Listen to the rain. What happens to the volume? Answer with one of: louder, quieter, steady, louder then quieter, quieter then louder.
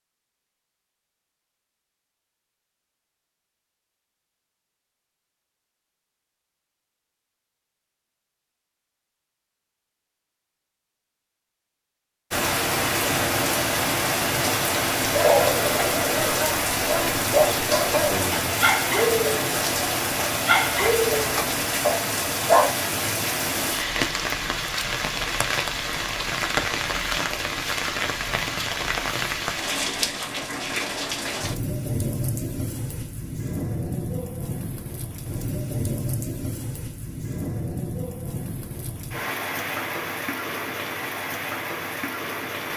quieter.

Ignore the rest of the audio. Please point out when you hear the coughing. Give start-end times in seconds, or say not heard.
not heard.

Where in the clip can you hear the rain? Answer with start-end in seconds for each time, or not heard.
12.3-42.7.